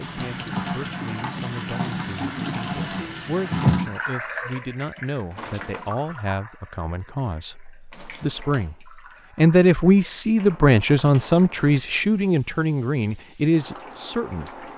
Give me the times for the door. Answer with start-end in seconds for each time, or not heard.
not heard.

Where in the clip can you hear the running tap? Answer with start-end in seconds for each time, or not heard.
0.0-14.7.